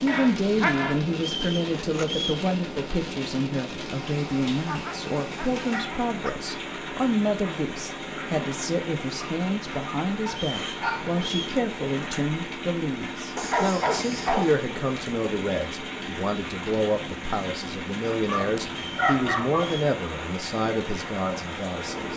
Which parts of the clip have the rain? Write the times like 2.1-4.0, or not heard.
0.0-22.1.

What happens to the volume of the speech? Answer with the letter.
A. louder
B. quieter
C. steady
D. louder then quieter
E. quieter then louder
C.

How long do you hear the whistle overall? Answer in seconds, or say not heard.
4 s.